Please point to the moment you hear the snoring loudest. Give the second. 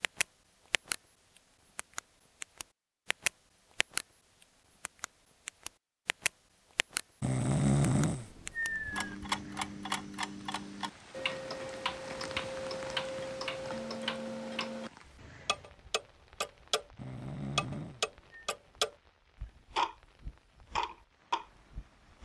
8 s.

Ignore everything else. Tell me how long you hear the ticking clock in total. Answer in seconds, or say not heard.
19 s.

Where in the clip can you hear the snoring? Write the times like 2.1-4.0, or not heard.
7.2-9.2, 16.9-18.4.